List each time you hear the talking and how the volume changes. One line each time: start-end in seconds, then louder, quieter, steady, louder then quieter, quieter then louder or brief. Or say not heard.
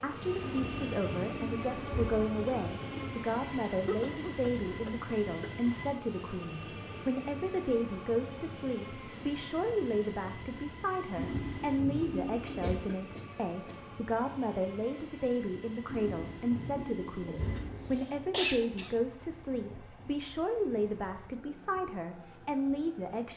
0.0-23.3 steady.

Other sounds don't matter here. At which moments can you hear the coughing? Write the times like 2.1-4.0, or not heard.
3.9-5.7, 12.6-13.8, 17.2-18.9.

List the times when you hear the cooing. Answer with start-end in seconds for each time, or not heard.
0.4-3.1, 11.2-12.8, 15.8-18.1.